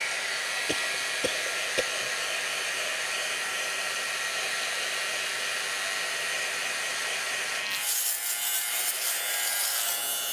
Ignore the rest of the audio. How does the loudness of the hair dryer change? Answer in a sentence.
The volume of the hair dryer goes down.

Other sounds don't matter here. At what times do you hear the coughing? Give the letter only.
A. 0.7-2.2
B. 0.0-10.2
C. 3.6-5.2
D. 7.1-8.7
A.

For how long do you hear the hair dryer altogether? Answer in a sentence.
You can hear the hair dryer for 10 seconds altogether.